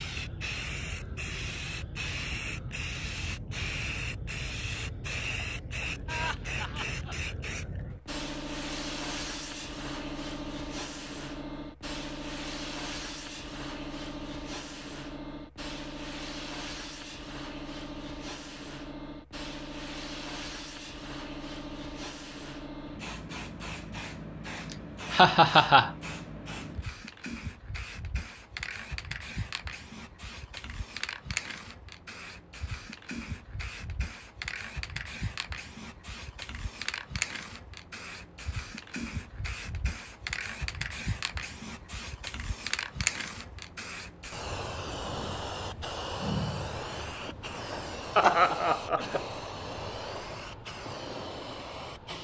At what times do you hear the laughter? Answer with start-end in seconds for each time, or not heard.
6.0-7.2, 24.7-25.9, 48.1-49.2.